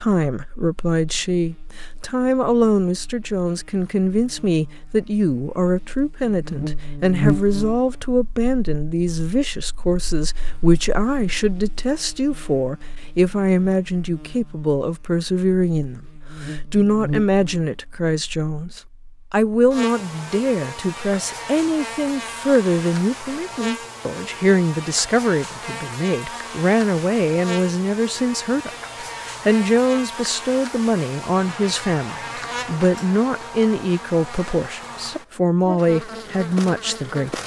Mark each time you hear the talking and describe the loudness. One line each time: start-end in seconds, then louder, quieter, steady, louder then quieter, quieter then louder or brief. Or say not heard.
0.0-37.4 steady.